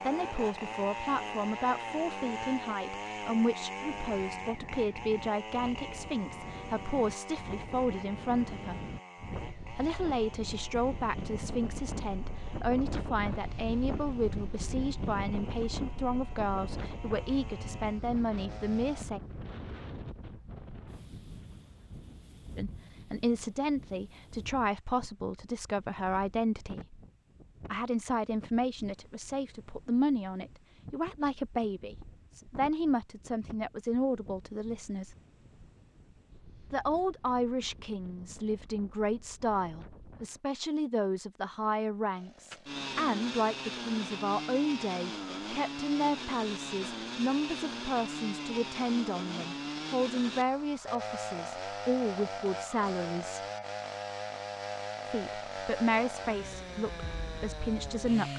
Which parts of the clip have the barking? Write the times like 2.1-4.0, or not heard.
not heard.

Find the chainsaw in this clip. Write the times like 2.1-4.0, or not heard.
0.0-19.1, 42.1-58.3.